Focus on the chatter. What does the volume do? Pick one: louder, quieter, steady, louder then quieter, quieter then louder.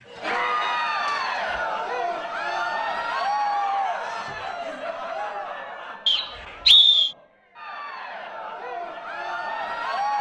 quieter then louder.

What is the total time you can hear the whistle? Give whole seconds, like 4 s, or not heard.
2 s.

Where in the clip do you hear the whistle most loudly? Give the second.
7 s.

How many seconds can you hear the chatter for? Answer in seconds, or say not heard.
10 s.